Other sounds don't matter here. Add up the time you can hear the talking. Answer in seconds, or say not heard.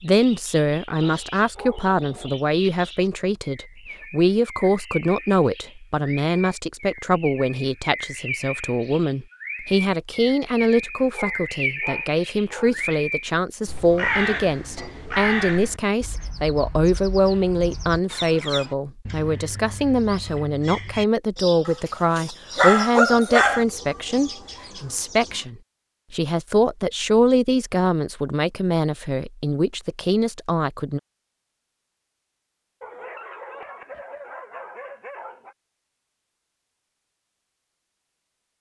31 s.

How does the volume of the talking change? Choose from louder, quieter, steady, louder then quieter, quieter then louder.
steady.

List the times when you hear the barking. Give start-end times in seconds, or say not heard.
1.0-2.4, 11.1-12.9, 21.6-23.6, 32.8-35.5.